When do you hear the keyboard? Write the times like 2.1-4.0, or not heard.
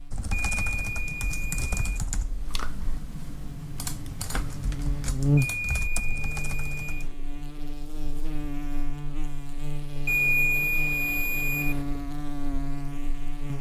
0.1-7.1.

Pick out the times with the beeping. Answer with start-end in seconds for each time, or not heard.
0.3-2.1, 5.3-7.2, 10.1-11.8.